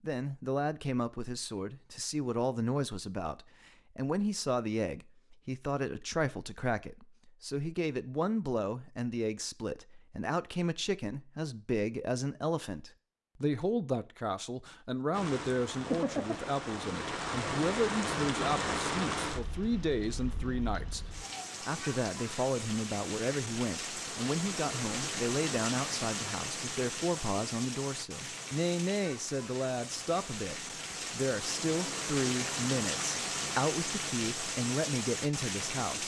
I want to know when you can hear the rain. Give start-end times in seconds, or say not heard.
15.1-36.0.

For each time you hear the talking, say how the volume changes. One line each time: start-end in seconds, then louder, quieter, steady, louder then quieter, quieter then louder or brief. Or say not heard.
0.0-36.0 steady.